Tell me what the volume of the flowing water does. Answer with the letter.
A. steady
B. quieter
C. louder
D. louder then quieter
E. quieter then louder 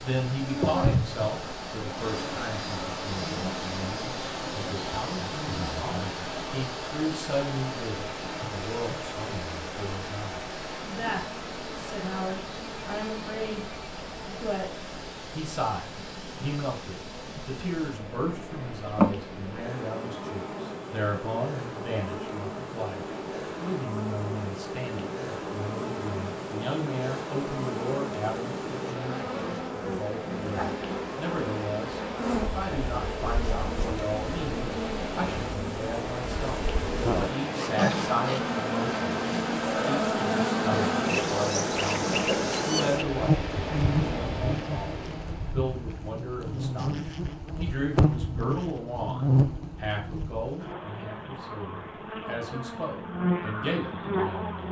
E.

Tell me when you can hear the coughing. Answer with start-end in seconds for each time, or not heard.
not heard.